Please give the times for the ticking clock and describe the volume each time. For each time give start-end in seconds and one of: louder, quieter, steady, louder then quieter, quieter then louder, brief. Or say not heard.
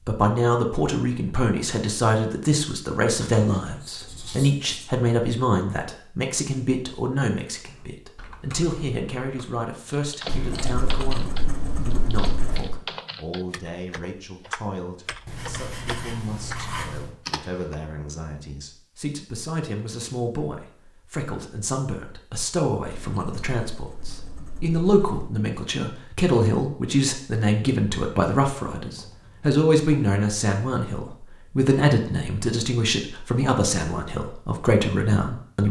not heard.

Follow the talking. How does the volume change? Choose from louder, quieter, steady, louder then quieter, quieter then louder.
quieter then louder.